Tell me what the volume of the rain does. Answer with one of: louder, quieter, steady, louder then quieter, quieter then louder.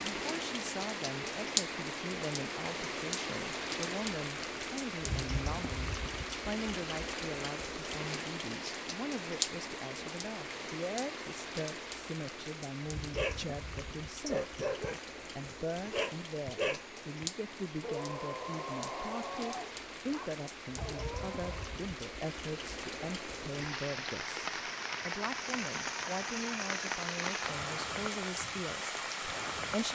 quieter then louder.